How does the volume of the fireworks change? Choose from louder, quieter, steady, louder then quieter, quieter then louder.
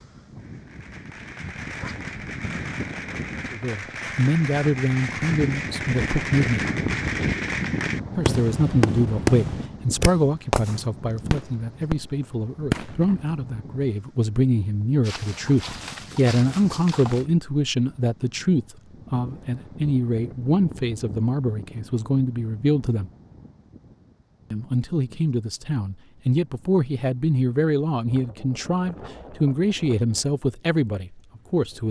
louder.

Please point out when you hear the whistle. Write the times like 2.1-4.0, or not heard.
not heard.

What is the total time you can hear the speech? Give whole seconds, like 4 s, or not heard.
25 s.